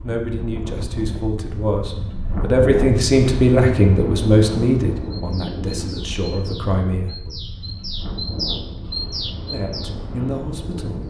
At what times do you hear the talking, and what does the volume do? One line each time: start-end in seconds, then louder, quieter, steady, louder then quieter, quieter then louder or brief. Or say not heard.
0.0-7.3 louder then quieter
9.5-11.0 brief.